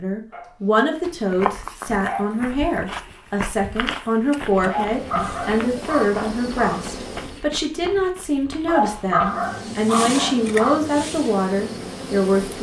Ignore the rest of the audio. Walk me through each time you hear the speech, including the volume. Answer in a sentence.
The speech can be heard from 0.0 to 12.5 s, at a steady volume.